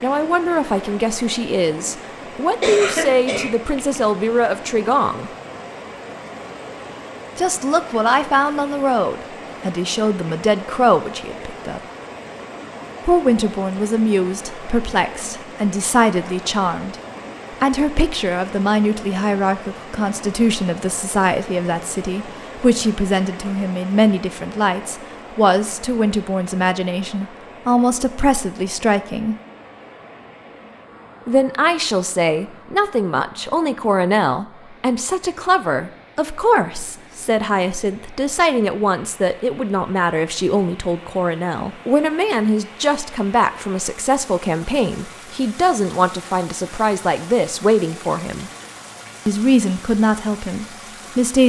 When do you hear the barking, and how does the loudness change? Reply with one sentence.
The barking can't be heard in this clip.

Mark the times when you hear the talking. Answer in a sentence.
The talking can be heard from 0.0 to 5.3 s, from 7.3 to 11.8 s, from 13.1 to 29.4 s, from 31.2 to 48.5 s and from 49.2 to 51.4 s.